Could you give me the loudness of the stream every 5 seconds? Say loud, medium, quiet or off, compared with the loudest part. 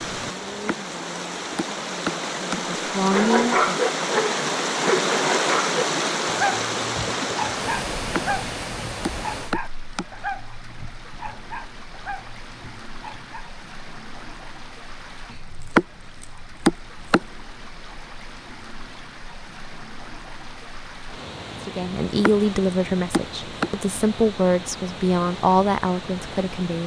loud, loud, quiet, quiet, medium, medium.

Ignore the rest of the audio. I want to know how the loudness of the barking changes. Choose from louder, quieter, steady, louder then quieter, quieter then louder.
quieter.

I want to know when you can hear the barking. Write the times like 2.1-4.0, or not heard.
3.1-13.4.